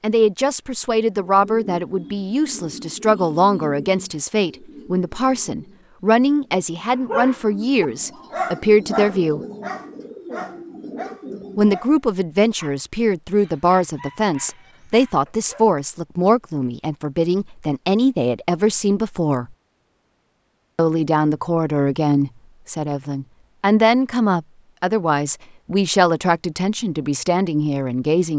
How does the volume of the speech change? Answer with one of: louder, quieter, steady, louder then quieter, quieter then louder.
steady.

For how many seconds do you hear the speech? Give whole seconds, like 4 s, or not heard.
25 s.